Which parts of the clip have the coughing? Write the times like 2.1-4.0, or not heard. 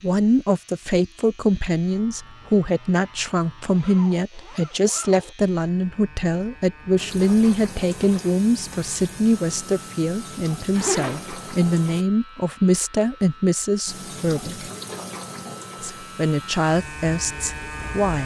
not heard.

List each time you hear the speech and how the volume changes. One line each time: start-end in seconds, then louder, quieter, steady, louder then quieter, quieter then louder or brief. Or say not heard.
0.0-14.7 steady
15.8-18.2 brief.